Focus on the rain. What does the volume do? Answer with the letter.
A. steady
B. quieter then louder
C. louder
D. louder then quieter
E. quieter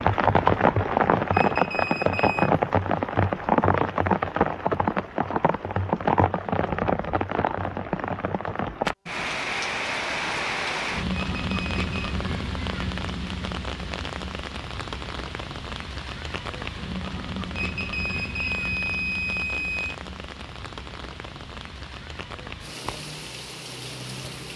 E.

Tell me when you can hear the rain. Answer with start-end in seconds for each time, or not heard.
0.0-24.5.